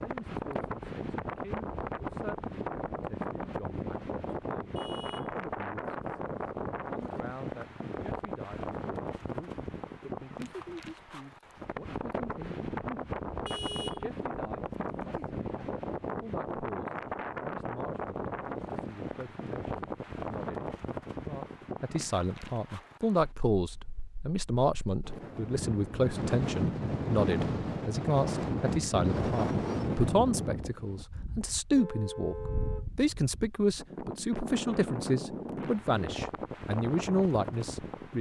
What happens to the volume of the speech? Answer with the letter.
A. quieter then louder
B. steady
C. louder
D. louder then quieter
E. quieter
C.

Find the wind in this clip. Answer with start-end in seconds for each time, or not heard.
0.0-38.1.